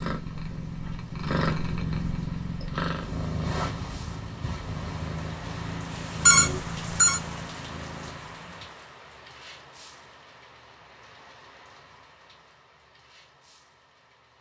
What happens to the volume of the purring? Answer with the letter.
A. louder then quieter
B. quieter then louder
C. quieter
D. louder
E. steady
C.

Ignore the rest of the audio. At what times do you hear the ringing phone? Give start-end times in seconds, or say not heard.
6.2-7.2.